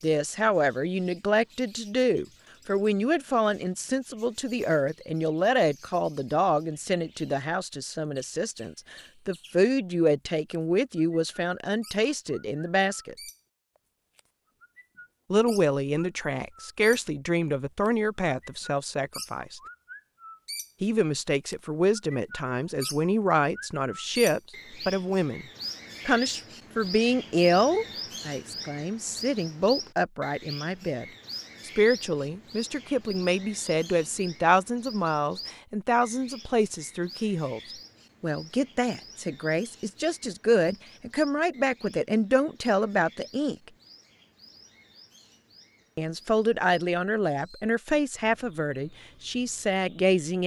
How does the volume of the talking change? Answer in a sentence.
The loudness of the talking stays about the same.